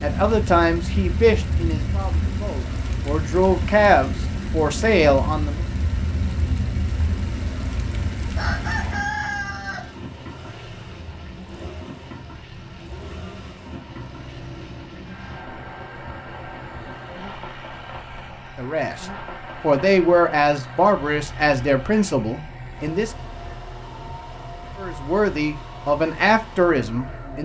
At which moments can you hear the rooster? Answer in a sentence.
The rooster can be heard from 8.3 to 9.9 s.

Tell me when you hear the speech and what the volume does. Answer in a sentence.
You can hear the speech from 0.0 to 5.6 s, getting quieter then louder; from 18.6 to 23.1 s, getting louder then quieter; and briefly from 24.8 to 27.3 s.